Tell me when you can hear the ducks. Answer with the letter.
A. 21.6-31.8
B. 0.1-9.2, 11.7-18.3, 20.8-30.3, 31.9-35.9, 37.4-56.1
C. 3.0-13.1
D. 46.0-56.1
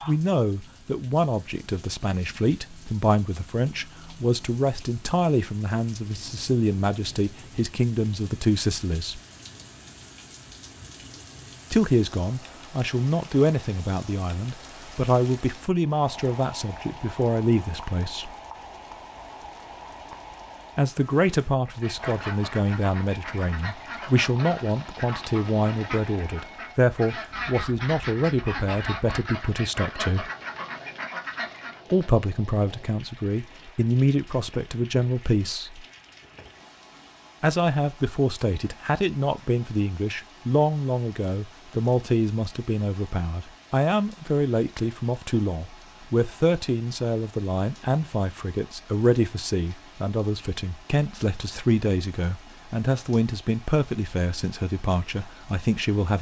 A.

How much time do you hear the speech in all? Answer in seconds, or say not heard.
48 s.